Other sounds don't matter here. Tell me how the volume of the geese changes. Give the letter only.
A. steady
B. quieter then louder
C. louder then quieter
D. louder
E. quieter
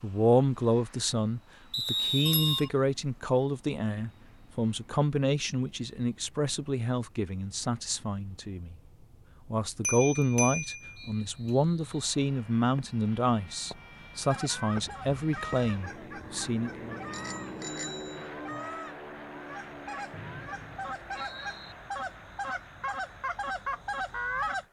D.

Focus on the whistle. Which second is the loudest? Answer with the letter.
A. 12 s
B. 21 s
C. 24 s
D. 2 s
D.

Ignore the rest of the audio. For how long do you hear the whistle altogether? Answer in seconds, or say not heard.
4 s.